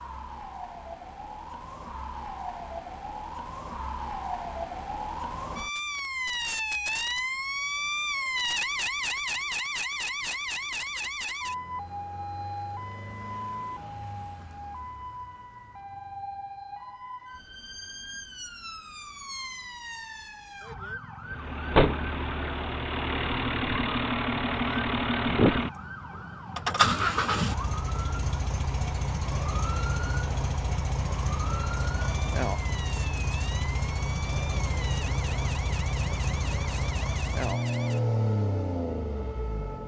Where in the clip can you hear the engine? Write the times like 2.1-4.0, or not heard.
21.2-39.8.